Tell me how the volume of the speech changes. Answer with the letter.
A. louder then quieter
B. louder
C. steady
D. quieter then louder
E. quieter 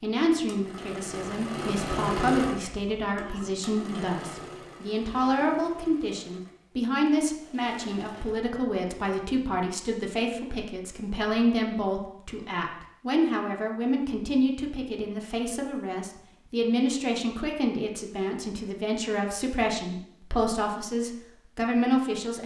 C.